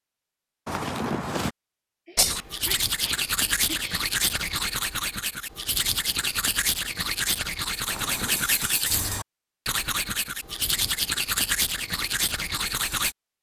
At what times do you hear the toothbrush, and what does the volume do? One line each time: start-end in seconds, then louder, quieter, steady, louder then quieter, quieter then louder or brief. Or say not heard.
2.1-13.2 steady.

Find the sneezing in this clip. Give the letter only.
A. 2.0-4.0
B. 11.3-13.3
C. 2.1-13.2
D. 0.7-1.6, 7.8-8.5
A.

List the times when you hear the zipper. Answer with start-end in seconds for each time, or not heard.
0.7-1.6, 7.8-8.5.